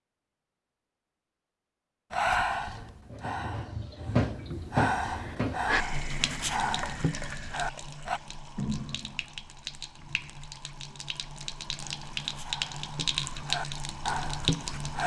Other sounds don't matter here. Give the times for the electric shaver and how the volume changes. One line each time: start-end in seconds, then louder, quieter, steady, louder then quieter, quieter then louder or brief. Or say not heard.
not heard.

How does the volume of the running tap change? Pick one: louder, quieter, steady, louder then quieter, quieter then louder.
quieter then louder.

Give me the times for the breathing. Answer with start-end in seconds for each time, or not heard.
2.1-8.2, 11.8-15.0.